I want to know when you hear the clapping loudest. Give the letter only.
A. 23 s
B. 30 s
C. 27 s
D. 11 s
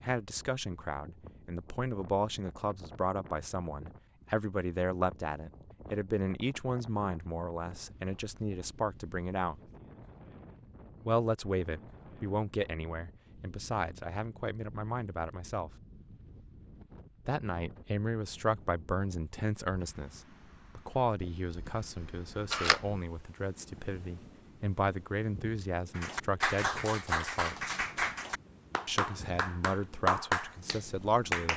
B.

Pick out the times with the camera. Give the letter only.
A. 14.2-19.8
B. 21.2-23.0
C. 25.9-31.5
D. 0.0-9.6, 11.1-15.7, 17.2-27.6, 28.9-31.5
B.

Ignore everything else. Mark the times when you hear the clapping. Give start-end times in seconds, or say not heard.
25.9-31.5.